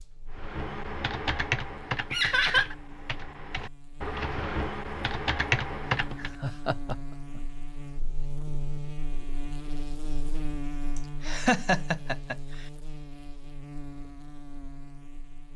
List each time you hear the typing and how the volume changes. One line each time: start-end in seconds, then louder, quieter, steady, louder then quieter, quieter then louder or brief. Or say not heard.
0.3-6.3 quieter then louder.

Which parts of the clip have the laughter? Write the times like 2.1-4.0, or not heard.
2.1-2.8, 6.2-7.4, 10.9-12.7.